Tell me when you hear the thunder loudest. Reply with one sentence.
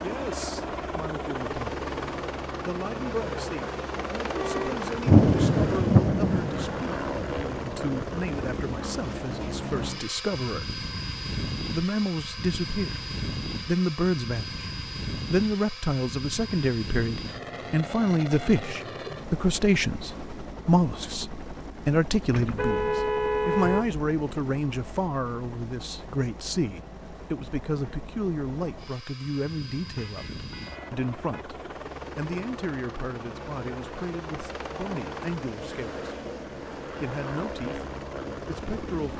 The volume of the thunder peaks at 5 seconds.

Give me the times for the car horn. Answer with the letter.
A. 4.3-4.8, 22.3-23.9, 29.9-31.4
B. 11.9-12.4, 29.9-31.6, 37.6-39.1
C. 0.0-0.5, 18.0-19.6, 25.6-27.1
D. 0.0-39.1
A.